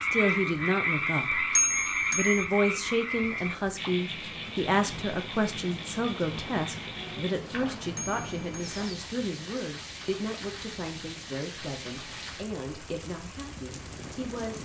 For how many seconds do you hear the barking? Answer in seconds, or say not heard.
not heard.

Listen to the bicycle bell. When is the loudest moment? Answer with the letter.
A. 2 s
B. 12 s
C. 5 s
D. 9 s
A.